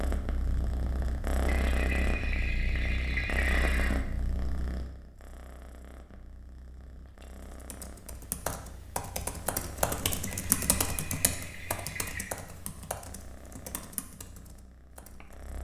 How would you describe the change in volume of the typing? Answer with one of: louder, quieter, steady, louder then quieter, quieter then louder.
louder then quieter.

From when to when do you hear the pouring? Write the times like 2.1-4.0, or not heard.
1.4-4.0, 10.2-12.3.